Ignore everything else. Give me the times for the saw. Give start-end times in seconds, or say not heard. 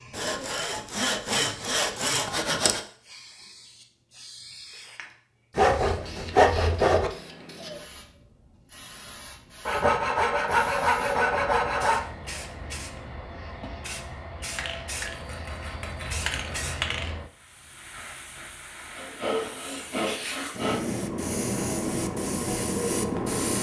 0.1-2.8, 5.5-7.1, 9.7-12.1, 15.0-16.8, 18.9-20.8.